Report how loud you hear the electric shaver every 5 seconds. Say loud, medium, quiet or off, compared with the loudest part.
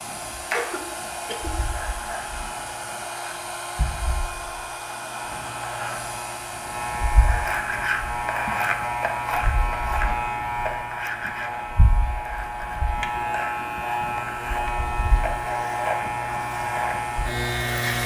medium, loud, loud, loud.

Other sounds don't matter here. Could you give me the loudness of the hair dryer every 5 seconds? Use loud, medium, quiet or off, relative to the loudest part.
loud, loud, medium, loud.